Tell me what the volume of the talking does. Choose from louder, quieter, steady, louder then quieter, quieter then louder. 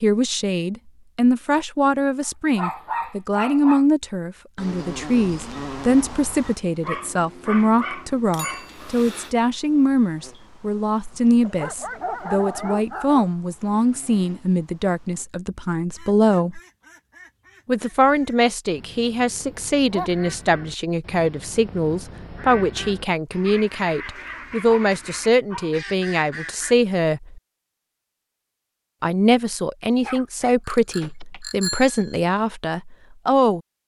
steady.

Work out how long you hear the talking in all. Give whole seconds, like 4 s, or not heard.
31 s.